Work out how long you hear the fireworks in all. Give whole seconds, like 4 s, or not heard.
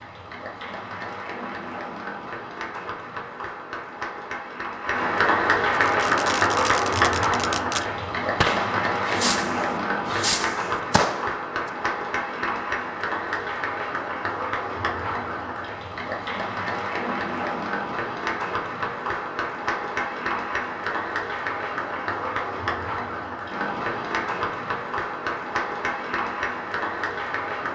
6 s.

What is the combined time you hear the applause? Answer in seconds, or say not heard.
28 s.